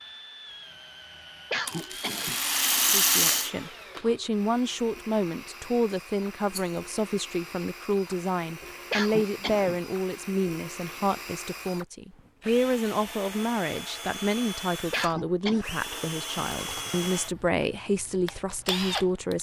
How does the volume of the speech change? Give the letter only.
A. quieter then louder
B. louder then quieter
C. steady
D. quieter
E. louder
C.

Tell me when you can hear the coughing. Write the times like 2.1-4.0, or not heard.
1.5-2.4, 8.9-9.8, 14.9-15.7.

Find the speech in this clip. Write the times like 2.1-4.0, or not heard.
2.9-19.3.